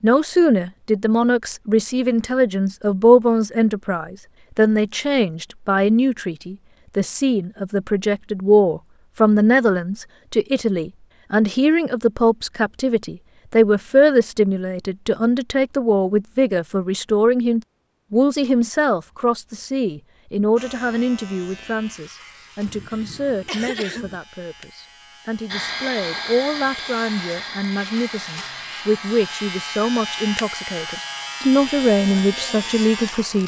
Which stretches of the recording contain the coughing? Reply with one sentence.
The coughing can be heard from 22.6 to 24.2 s.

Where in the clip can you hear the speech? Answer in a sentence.
You can hear the speech from 0.0 to 33.4 s.